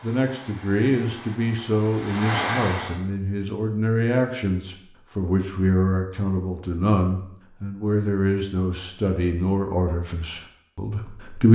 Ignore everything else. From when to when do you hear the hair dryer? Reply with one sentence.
The hair dryer can be heard from 0.0 to 3.0 s.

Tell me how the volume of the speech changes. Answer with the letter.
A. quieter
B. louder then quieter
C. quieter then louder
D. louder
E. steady
E.